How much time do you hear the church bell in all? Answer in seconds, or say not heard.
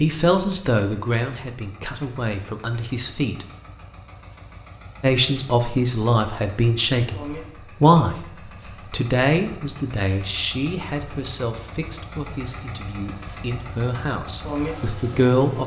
not heard.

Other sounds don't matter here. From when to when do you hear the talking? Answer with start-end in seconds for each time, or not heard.
0.0-3.5, 5.0-8.2, 8.9-15.6.